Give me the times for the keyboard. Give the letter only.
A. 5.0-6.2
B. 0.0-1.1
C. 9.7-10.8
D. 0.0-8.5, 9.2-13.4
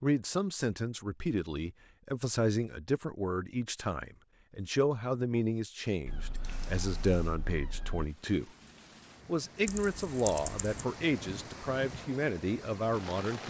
C.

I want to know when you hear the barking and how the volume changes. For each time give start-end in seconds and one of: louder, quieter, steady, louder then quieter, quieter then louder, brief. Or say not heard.
not heard.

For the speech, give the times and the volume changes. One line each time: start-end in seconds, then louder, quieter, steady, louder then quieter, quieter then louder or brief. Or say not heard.
0.0-8.5 steady
9.2-13.4 steady.